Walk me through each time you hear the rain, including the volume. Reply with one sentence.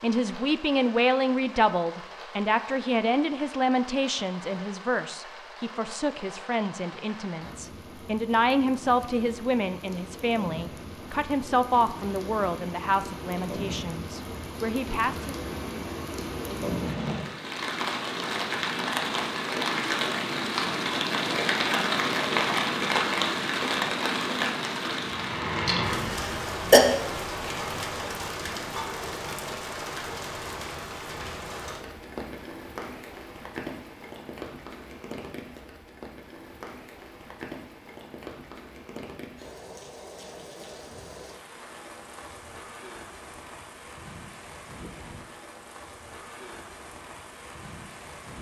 The rain can be heard from 0.0 to 48.3 s, getting louder then quieter.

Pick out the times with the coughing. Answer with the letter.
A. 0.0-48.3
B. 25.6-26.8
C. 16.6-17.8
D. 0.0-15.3
B.